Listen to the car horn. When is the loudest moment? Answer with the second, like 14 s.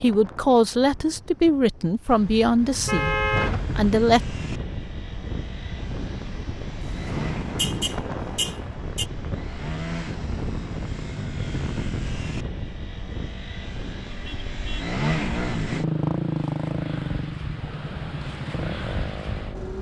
3 s.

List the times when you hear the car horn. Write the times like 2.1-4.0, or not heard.
2.0-4.0, 7.5-9.1, 14.2-14.9.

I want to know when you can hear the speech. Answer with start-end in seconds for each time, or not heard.
0.0-3.1, 3.8-4.2.